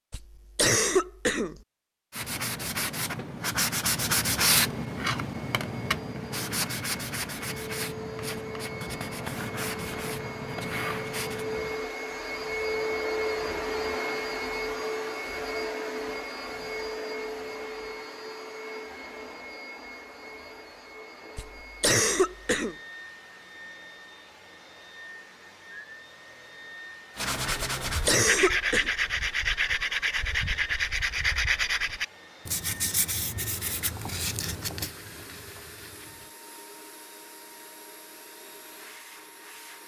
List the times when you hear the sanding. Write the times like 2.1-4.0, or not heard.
2.1-11.8, 27.1-36.3.